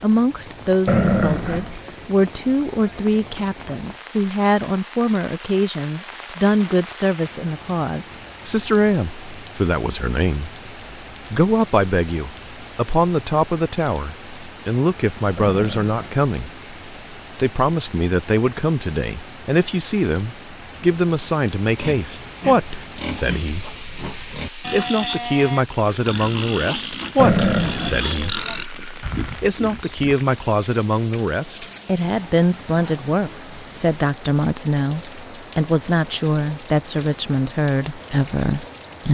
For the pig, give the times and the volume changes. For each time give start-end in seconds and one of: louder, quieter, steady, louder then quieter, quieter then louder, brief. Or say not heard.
21.6-30.1 steady.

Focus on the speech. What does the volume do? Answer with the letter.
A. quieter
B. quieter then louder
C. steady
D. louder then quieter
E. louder
C.